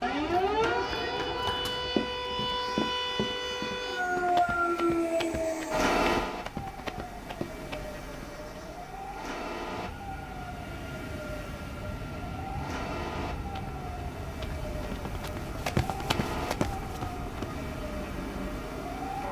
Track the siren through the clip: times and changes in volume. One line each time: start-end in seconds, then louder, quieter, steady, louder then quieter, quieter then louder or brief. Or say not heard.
0.0-19.2 quieter.